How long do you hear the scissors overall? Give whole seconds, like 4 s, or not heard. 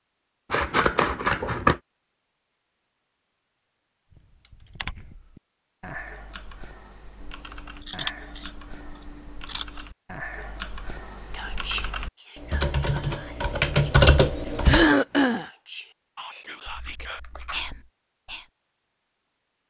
5 s.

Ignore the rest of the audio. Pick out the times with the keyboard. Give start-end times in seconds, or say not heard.
4.1-14.9.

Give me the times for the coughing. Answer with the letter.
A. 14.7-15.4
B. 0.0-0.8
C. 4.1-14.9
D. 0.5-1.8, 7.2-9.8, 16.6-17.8
A.